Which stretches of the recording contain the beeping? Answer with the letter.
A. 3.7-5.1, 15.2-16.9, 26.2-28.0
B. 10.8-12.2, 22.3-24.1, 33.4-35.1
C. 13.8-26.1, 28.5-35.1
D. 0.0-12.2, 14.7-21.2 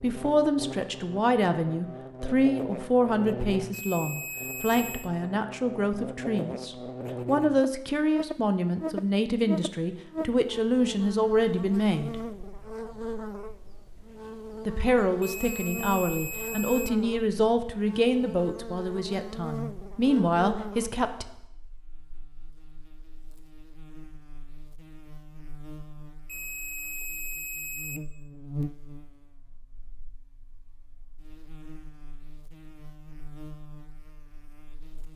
A.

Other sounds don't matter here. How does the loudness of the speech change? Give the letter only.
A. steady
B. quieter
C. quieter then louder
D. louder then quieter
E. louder
A.